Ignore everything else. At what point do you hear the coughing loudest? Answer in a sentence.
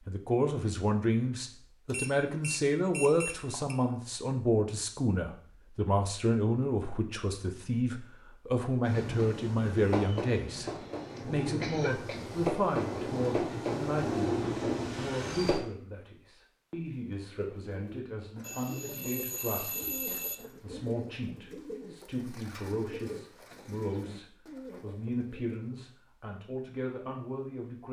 The volume of the coughing peaks at 12 seconds.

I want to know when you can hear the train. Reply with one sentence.
The train can be heard from 8.8 to 15.6 s.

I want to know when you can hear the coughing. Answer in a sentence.
You can hear the coughing from 10.7 to 12.2 s and from 20.1 to 20.7 s.